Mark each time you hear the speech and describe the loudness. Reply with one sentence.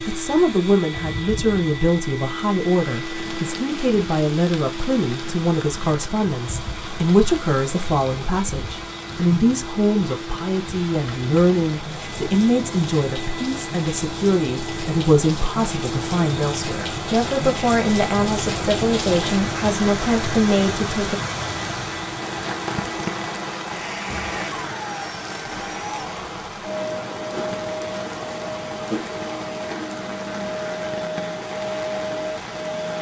You can hear the speech from 0.1 to 21.2 s, at a steady volume.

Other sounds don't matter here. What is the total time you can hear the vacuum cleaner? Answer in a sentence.
The vacuum cleaner can be heard for 33 seconds in total.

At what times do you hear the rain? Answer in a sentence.
The rain can be heard from 0.0 to 32.9 s.